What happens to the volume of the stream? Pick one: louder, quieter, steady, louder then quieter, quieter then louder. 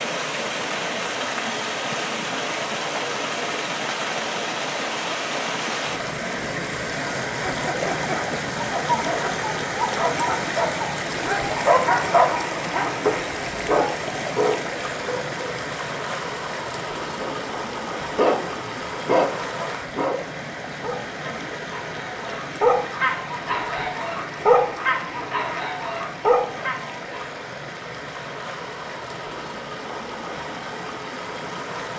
quieter.